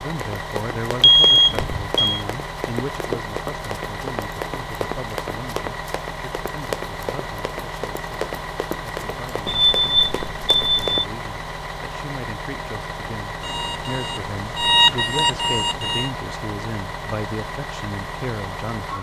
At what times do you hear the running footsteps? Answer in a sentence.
You can hear the running footsteps from 0.1 to 11.1 s.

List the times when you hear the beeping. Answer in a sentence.
You can hear the beeping from 1.0 to 2.2 s, from 9.4 to 10.8 s and from 13.4 to 16.1 s.